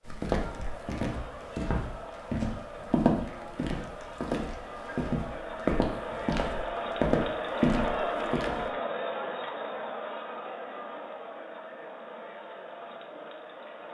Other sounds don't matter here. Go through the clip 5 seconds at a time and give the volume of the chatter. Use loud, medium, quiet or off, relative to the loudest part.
medium, loud, medium.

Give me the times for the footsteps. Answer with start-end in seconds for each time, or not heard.
0.0-8.7.